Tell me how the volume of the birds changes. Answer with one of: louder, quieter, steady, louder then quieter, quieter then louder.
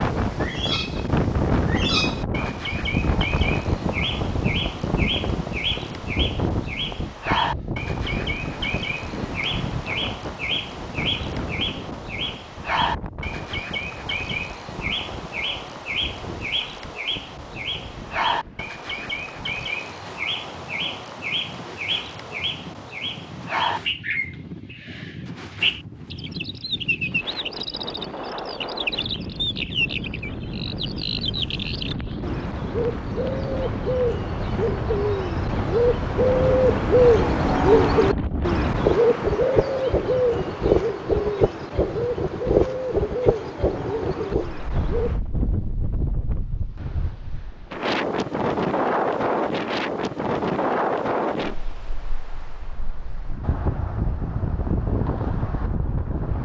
louder.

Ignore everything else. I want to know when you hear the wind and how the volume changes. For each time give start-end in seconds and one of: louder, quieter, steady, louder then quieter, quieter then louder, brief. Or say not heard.
0.0-56.4 quieter then louder.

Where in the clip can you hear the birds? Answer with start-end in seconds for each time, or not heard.
0.0-45.2.